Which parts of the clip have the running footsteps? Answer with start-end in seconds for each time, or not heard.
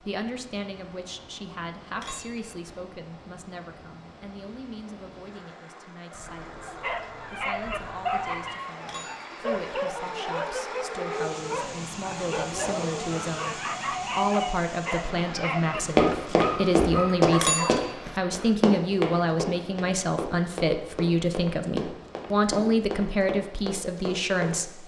15.9-24.6.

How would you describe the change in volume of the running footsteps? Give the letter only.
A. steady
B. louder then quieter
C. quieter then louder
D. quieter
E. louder
D.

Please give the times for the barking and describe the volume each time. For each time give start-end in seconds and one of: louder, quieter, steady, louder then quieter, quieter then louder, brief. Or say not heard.
6.8-17.9 steady.